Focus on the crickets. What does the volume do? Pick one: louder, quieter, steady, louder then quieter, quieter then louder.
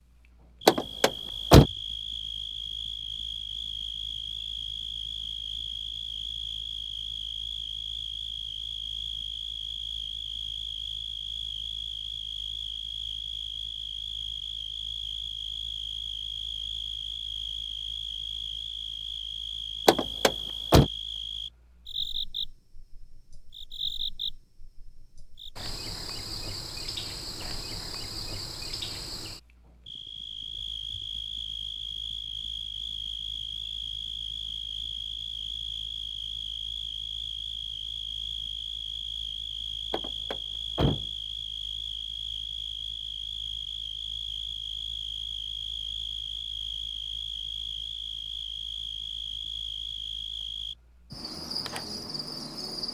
steady.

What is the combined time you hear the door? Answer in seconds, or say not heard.
3 s.